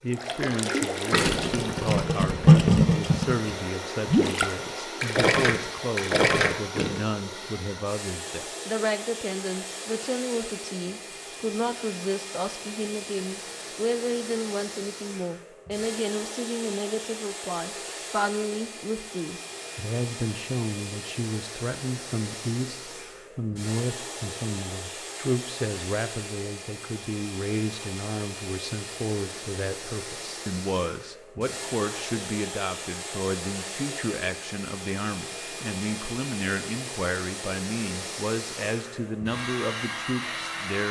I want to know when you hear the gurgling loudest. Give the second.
3 s.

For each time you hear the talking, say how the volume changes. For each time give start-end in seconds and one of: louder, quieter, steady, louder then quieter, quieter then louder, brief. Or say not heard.
0.0-40.8 steady.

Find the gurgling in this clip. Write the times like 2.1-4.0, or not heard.
0.1-7.0.